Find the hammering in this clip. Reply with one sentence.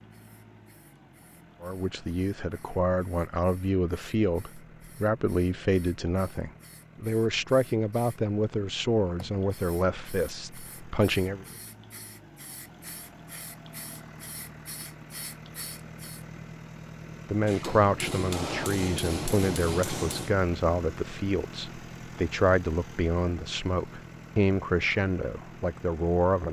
The hammering can be heard from 17.4 to 20.4 s.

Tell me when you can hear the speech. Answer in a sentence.
You can hear the speech from 1.6 to 11.4 s and from 17.3 to 26.4 s.